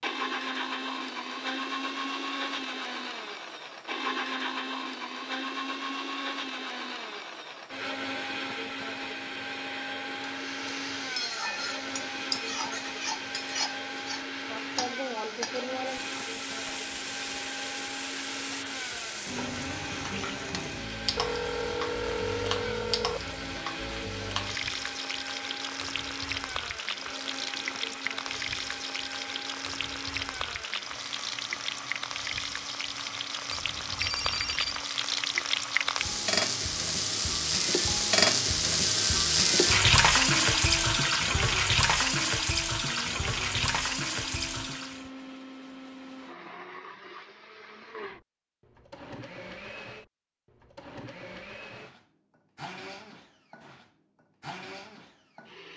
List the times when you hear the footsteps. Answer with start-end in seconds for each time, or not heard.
not heard.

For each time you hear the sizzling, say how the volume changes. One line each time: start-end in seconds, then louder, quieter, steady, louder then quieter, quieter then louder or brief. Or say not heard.
10.2-45.1 louder.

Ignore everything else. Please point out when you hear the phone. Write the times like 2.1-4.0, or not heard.
21.1-23.4, 33.6-34.8.